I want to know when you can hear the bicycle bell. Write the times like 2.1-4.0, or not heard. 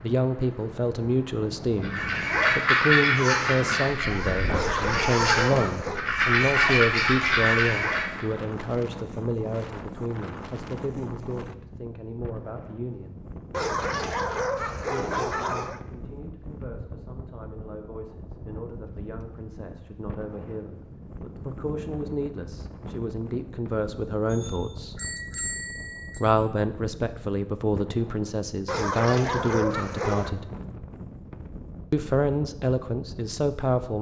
24.3-26.2.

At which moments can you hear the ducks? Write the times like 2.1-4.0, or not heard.
1.8-8.2.